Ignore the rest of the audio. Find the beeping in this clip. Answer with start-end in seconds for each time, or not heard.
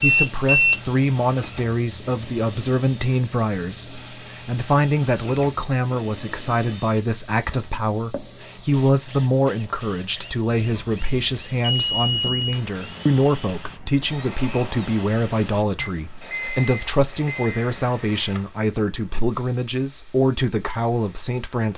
0.0-0.8, 10.6-12.6, 15.8-17.7.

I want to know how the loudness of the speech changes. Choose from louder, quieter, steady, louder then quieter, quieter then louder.
steady.